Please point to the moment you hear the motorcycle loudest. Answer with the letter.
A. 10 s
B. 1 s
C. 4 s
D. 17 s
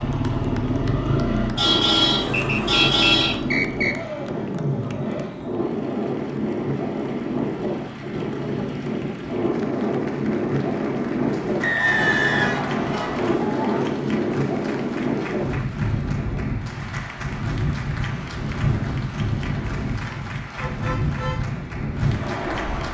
B.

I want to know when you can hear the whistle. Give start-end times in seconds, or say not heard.
2.3-4.0, 11.6-13.3.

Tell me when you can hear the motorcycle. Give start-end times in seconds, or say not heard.
0.0-5.4.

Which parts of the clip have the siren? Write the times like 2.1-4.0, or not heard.
not heard.